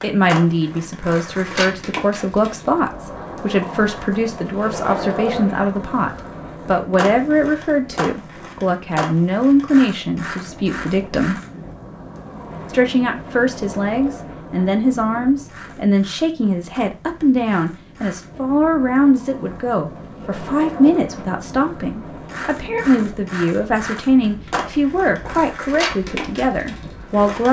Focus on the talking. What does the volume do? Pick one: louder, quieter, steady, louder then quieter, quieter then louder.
steady.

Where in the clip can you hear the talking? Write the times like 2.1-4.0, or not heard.
0.0-11.4, 12.7-27.4.